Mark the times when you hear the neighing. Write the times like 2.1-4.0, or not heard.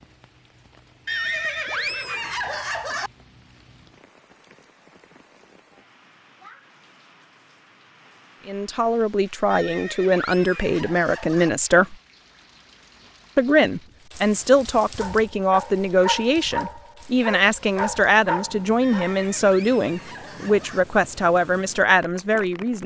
1.1-3.1, 9.5-11.5, 18.8-20.9.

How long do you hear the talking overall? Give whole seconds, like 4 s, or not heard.
13 s.